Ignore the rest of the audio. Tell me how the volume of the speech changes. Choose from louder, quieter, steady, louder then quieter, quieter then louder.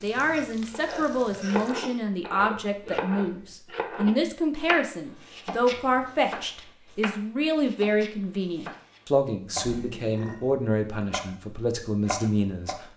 steady.